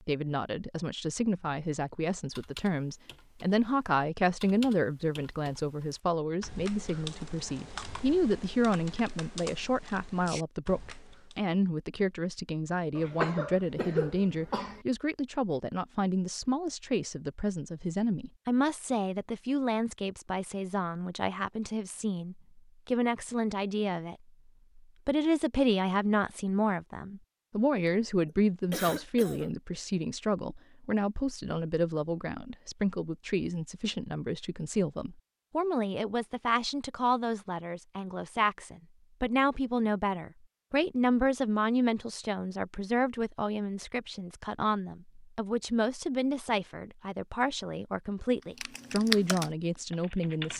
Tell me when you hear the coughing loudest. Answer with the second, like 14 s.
13 s.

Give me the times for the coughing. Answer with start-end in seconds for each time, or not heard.
12.9-14.8, 27.9-29.6.